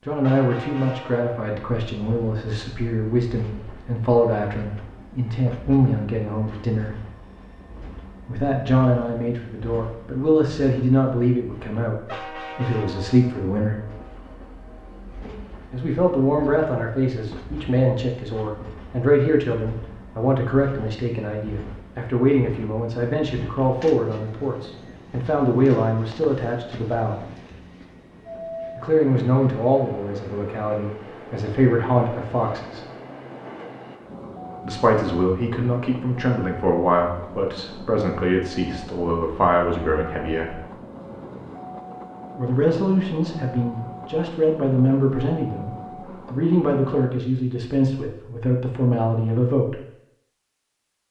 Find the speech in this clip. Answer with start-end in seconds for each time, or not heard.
0.1-7.0, 8.2-13.8, 15.7-27.2, 28.8-32.8, 34.6-40.6, 42.4-49.8.